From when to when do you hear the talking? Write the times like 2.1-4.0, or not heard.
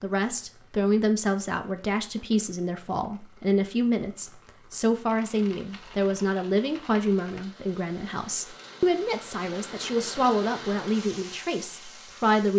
0.0-12.5.